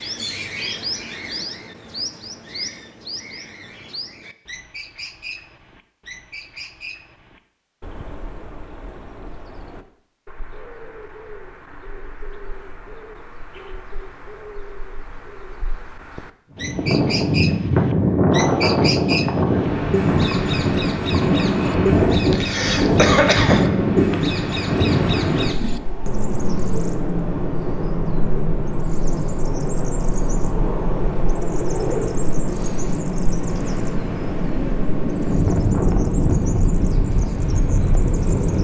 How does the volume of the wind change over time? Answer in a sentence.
The volume of the wind goes down, then up.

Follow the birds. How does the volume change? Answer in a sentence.
The loudness of the birds goes down, then up.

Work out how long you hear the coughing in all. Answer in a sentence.
You can hear the coughing for 2 seconds altogether.